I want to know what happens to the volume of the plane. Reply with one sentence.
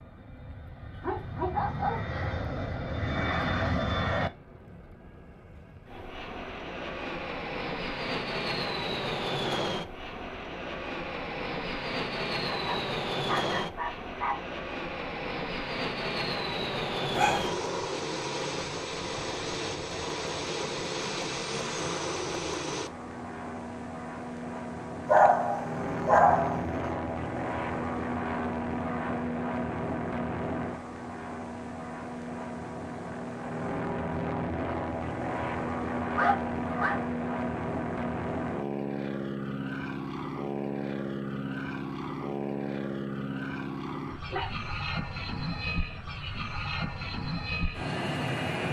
The loudness of the plane stays about the same.